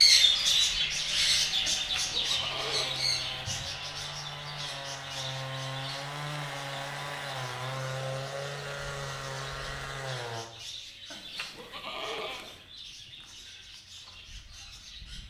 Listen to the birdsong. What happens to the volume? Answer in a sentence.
The loudness of the birdsong goes down.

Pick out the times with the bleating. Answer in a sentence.
The bleating can be heard from 1.6 to 3.6 s and from 11.1 to 12.7 s.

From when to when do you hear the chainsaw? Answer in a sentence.
The chainsaw can be heard from 0.0 to 10.5 s.